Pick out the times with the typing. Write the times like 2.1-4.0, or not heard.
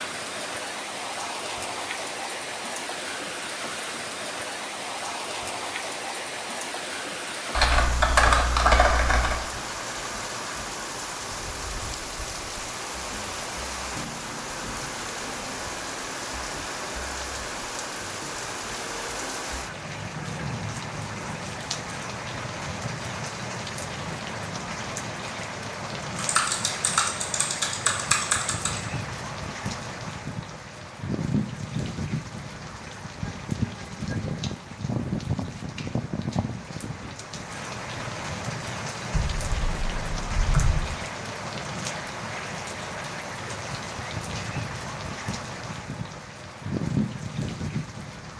7.5-9.4, 26.1-28.8, 39.1-40.9.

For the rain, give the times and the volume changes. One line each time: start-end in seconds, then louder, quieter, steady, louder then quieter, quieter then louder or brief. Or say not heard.
0.0-48.3 steady.